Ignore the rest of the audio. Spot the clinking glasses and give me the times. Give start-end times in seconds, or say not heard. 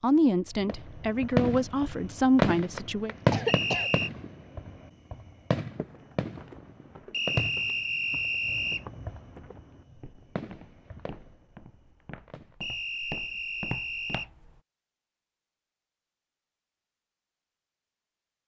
not heard.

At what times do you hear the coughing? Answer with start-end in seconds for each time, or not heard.
2.8-3.9.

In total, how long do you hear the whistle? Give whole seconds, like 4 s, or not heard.
4 s.